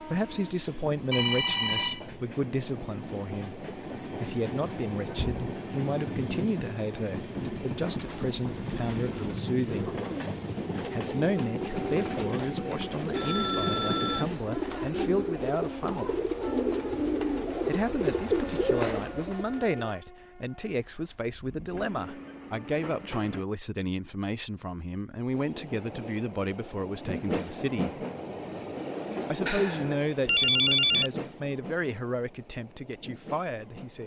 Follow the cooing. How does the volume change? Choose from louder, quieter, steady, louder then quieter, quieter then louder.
louder.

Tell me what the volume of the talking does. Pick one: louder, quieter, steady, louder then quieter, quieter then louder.
steady.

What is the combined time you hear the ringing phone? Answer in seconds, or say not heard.
4 s.